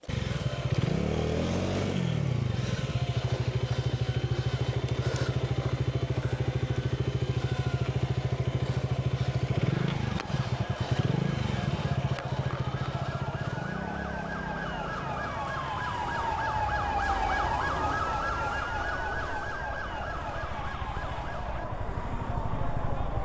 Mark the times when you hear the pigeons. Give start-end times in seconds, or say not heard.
not heard.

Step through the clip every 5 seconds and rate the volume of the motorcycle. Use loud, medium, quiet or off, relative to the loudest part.
loud, loud, loud, quiet, medium.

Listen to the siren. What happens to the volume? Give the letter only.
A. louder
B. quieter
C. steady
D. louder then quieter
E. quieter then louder
D.